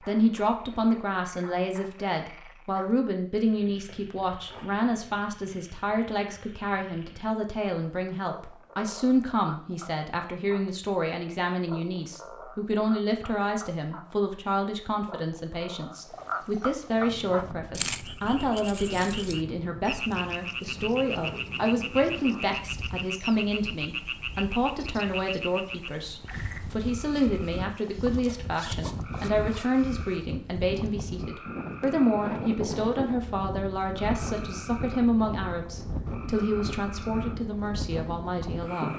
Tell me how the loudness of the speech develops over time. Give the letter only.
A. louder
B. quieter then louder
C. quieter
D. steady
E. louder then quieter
D.